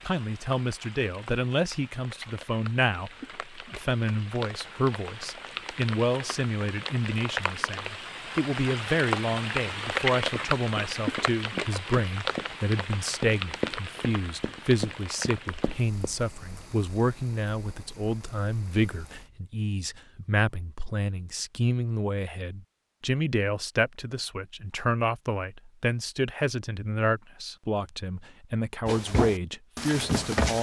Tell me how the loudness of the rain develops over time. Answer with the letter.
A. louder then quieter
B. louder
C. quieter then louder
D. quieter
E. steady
A.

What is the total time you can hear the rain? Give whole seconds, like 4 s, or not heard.
19 s.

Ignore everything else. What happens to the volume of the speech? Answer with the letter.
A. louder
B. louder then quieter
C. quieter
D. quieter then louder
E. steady
E.